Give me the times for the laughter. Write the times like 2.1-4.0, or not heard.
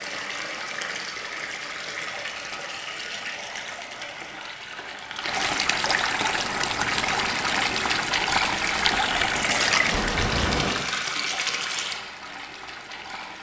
not heard.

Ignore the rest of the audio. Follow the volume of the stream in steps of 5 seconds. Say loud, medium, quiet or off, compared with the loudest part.
medium, loud, medium.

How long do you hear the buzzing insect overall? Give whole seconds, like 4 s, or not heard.
5 s.